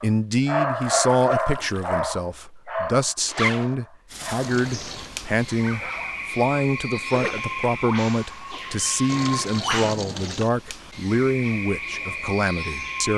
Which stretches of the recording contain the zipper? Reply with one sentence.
The zipper can be heard from 3.2 to 3.7 s and from 7.1 to 7.7 s.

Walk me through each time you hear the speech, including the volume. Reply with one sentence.
You can hear the speech from 0.0 to 13.1 s, at a steady volume.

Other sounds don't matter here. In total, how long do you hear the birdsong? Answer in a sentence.
You can hear the birdsong for 9 seconds altogether.